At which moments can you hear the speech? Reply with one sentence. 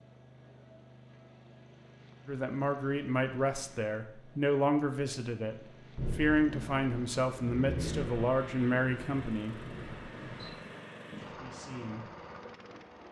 The speech can be heard from 2.2 to 9.6 s and from 11.2 to 12.1 s.